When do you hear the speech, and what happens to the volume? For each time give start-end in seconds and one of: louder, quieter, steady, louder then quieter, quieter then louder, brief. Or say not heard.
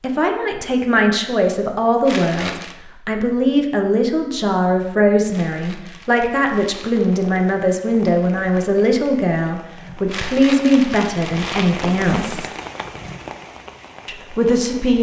0.0-12.5 steady
14.1-14.9 brief.